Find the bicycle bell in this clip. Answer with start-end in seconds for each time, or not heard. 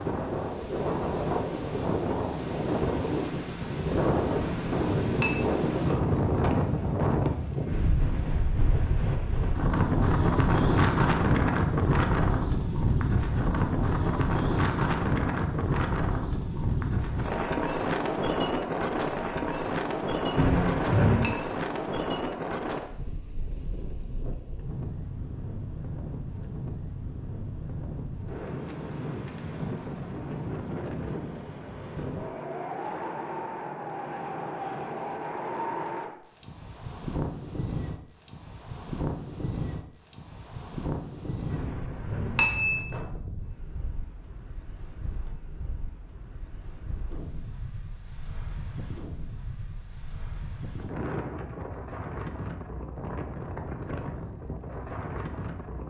4.3-5.3, 20.4-21.3, 41.5-42.8.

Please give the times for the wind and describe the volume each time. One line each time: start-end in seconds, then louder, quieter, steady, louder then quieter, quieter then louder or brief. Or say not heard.
0.0-55.8 quieter.